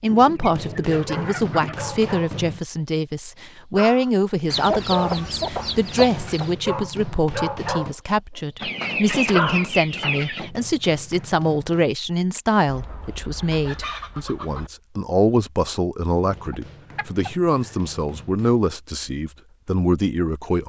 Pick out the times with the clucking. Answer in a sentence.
You can hear the clucking from 0.1 to 2.1 s, from 4.5 to 6.5 s, from 8.6 to 10.5 s, from 12.7 to 14.7 s and from 16.4 to 17.8 s.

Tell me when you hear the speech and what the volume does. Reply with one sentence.
You can hear the speech from 0.0 to 20.6 s, at a steady volume.